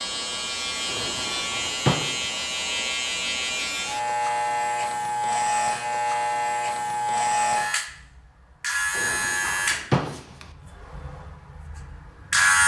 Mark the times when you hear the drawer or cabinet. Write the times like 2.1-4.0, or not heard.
0.8-2.3, 8.9-10.4.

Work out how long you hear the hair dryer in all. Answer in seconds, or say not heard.
not heard.